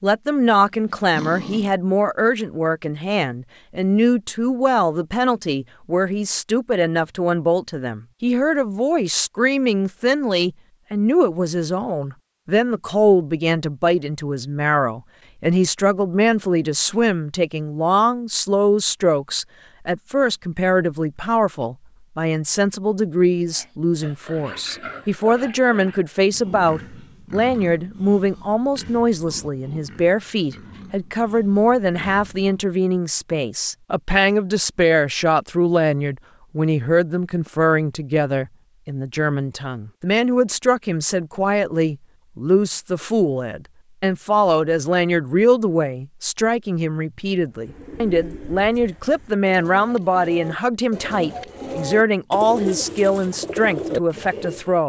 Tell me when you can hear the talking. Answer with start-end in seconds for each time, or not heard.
0.0-54.8.